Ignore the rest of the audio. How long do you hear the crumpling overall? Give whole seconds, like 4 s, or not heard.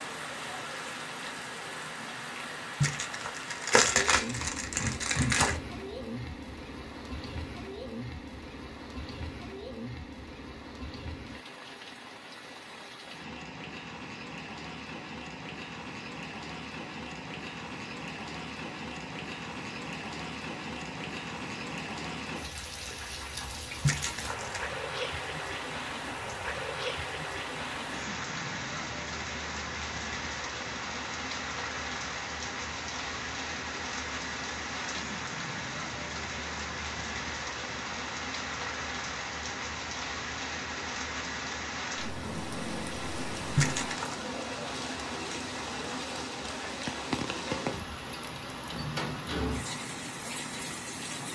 4 s.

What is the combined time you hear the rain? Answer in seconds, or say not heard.
51 s.